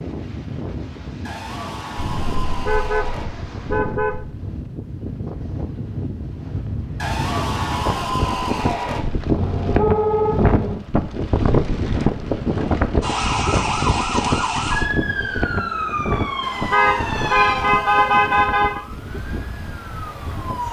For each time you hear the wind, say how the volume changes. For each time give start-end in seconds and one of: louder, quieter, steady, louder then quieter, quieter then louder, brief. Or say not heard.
0.0-20.6 louder then quieter.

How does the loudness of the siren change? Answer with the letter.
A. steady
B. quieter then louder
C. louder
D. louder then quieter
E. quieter
E.